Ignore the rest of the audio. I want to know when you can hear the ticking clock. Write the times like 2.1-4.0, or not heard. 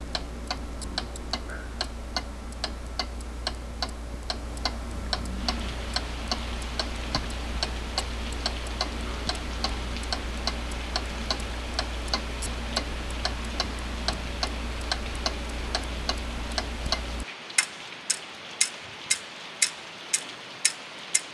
0.0-21.2.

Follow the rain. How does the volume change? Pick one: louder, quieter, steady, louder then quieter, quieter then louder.
steady.